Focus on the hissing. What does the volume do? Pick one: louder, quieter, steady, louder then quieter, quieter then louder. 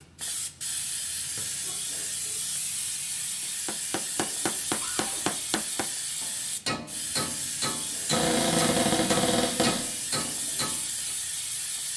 steady.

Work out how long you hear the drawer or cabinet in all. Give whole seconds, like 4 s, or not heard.
2 s.